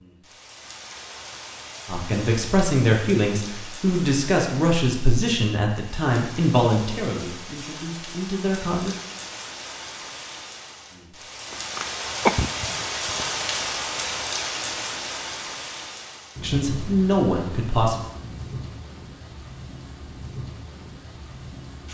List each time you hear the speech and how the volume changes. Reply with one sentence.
You can hear the speech from 1.9 to 8.9 s, getting quieter; and briefly from 16.4 to 18.0 s.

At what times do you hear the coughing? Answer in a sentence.
The coughing can be heard from 11.5 to 13.3 s.